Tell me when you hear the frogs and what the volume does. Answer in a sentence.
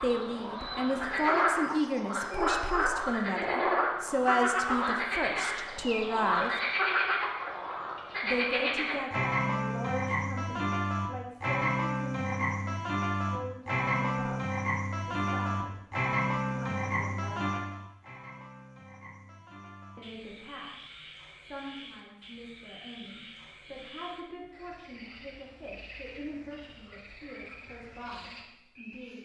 The frogs can be heard from 0.0 to 29.2 s, getting quieter.